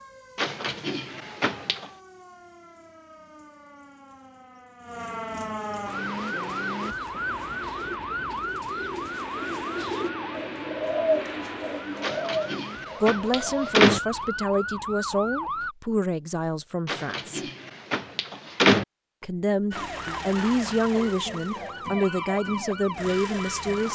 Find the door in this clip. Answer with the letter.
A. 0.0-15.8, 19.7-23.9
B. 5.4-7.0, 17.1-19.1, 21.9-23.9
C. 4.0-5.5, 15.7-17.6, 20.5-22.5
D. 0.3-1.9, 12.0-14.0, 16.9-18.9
D.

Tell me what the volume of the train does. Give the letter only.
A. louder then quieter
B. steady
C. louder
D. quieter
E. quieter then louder
C.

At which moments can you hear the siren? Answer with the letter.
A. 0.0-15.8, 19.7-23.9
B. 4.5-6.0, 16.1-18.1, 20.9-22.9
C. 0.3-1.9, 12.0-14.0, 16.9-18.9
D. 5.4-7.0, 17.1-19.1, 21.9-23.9
A.